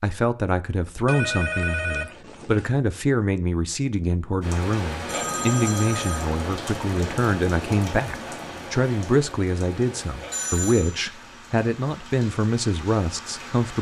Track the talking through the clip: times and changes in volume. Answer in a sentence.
The talking can be heard from 0.0 to 13.7 s, at a steady volume.